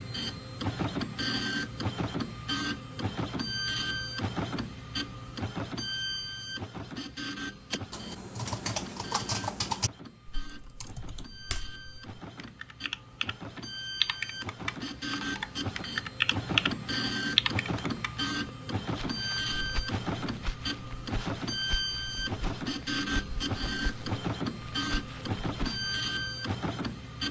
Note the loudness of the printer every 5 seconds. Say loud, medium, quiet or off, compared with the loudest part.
loud, medium, medium, loud, loud, loud.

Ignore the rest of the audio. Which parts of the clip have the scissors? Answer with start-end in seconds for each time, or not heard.
not heard.